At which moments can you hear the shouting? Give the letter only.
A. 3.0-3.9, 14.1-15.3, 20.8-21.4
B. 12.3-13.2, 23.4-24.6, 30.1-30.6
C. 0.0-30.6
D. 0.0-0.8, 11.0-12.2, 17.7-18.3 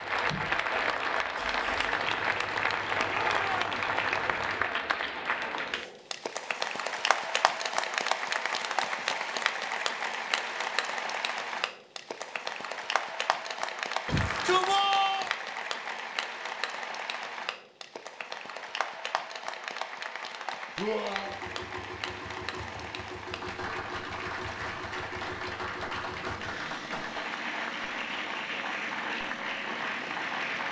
A.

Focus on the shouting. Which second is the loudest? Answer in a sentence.
The loudest moment of the shouting is at 15 seconds.